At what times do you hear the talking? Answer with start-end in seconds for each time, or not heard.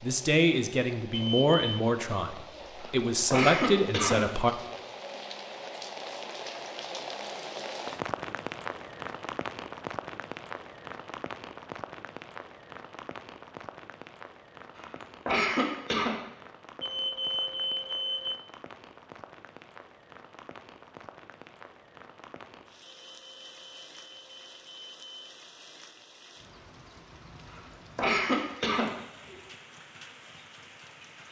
0.0-4.5.